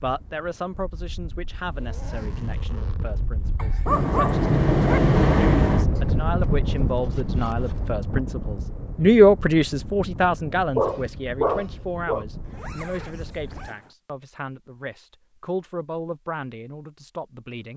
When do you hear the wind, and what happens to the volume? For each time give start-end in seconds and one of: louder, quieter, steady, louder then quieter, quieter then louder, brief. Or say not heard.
0.0-13.7 louder then quieter.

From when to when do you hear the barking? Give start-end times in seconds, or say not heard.
3.5-5.0, 10.8-12.2.